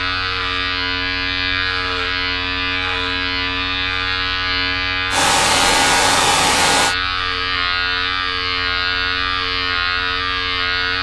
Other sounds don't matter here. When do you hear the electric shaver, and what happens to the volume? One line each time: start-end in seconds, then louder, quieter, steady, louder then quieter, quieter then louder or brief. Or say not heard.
0.0-10.9 steady.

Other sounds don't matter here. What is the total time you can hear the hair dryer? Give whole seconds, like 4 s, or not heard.
2 s.